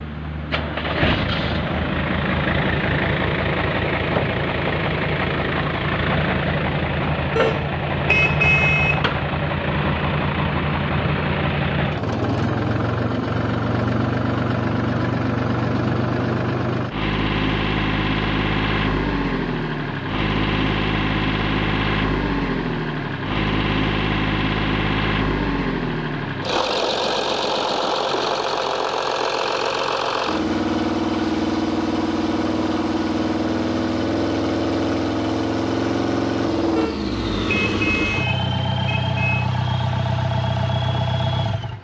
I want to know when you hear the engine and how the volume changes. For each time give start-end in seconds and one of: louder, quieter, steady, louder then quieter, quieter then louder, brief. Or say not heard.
0.0-41.8 steady.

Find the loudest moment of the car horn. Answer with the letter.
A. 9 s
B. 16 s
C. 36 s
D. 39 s
A.